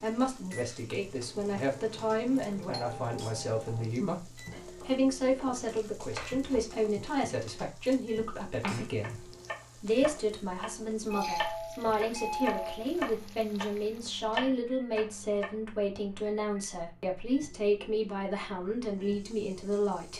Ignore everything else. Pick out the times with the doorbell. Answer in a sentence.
The doorbell can be heard from 2.7 to 3.9 s and from 11.1 to 12.8 s.